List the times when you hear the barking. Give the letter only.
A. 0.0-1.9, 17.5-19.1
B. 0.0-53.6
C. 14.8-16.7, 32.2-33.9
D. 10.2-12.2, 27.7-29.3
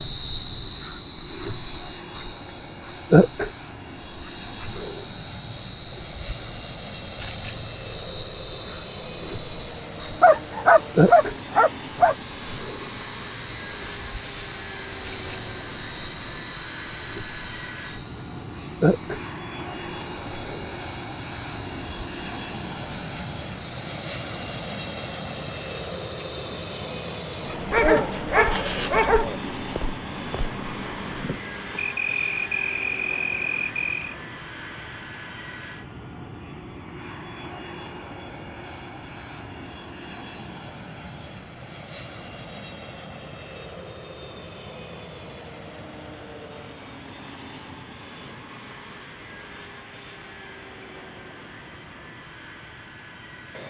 D.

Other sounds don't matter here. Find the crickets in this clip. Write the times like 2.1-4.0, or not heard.
0.0-34.1.